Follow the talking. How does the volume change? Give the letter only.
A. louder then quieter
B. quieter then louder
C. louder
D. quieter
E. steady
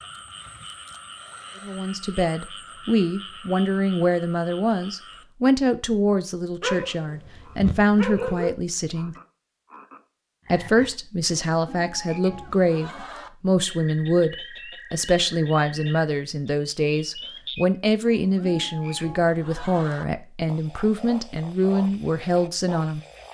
E.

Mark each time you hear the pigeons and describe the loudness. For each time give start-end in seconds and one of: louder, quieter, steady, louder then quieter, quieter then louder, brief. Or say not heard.
not heard.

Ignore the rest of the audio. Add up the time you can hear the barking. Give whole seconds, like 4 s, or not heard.
2 s.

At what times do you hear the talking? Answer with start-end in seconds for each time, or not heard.
1.6-9.2, 10.4-23.0.